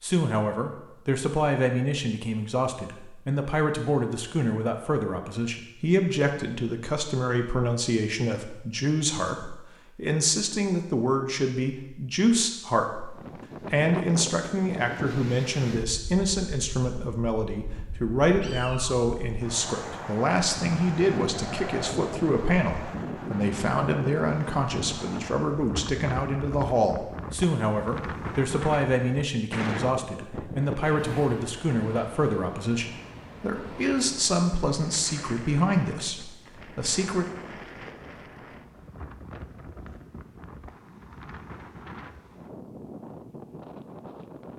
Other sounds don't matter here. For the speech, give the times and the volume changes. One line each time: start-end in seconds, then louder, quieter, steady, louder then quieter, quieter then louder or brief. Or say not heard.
0.0-37.2 steady.